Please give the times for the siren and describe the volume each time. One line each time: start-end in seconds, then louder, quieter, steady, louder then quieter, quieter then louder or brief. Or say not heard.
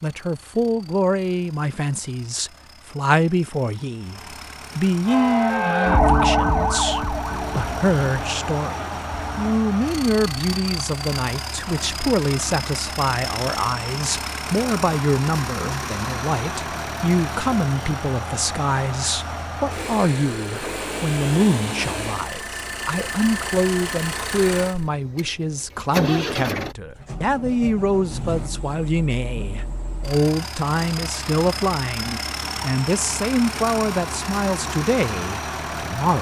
5.0-9.6 quieter.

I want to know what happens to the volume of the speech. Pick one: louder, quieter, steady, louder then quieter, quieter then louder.
steady.